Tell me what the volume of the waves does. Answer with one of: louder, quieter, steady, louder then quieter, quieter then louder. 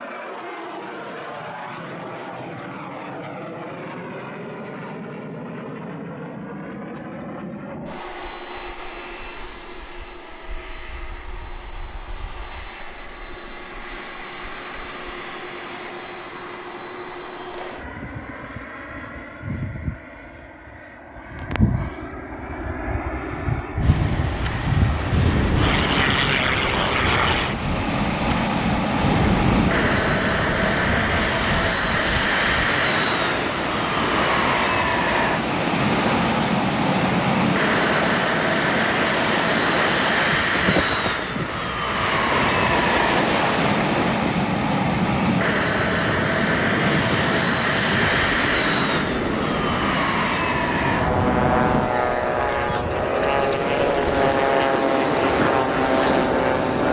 steady.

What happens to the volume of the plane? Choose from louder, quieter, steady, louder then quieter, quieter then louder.
louder.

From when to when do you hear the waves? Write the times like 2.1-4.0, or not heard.
23.8-56.8.